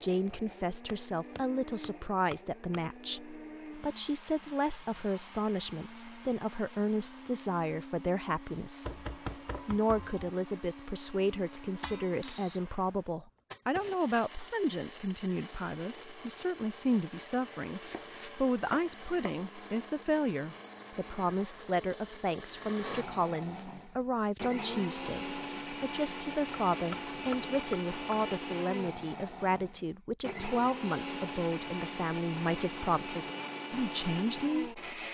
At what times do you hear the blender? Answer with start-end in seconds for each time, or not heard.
0.0-35.0.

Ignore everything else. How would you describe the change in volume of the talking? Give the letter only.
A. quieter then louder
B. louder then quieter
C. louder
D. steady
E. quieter
D.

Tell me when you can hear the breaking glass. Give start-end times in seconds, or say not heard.
11.8-12.6.